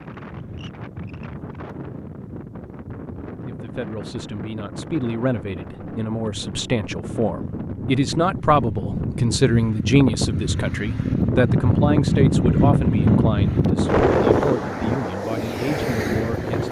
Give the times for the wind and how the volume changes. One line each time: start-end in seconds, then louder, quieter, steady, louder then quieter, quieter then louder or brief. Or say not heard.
0.0-16.6 louder.